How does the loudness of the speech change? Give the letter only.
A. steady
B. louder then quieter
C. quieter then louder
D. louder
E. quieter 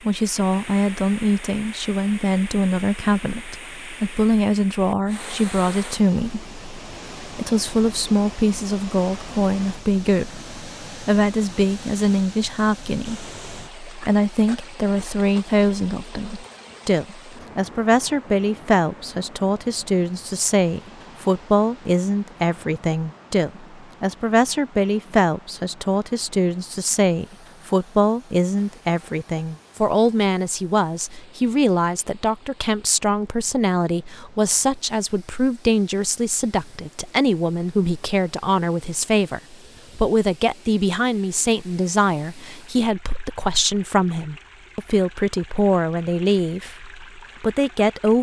A.